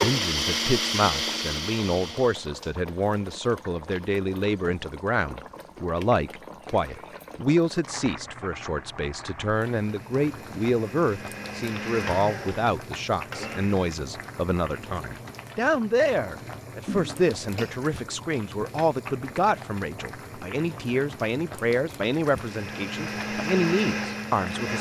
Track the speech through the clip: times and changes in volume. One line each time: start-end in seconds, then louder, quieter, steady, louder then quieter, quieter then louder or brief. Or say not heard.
0.0-24.7 steady.